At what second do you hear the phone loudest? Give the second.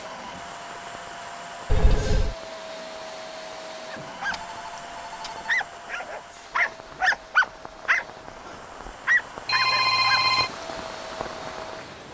10 s.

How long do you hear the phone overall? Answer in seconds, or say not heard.
3 s.